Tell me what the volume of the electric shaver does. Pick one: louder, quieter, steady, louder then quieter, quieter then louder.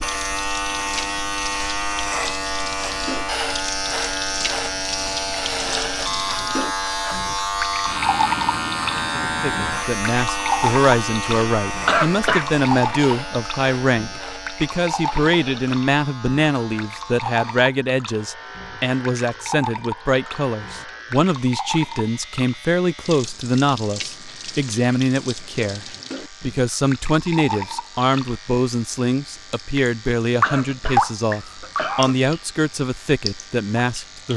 quieter.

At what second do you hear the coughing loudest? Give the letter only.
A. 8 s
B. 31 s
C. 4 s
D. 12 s
D.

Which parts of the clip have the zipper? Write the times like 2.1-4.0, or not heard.
not heard.